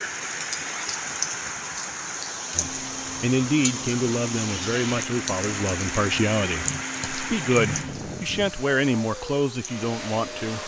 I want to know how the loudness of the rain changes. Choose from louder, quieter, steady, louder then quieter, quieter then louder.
quieter.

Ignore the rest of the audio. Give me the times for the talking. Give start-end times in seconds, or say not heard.
2.5-10.6.